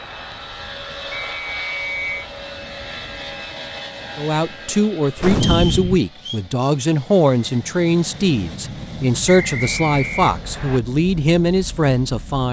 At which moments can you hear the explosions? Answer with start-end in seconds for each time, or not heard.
5.2-6.0.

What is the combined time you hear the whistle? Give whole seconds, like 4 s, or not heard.
4 s.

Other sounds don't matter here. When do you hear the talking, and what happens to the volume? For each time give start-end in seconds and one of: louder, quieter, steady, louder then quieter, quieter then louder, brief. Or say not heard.
4.2-12.4 steady.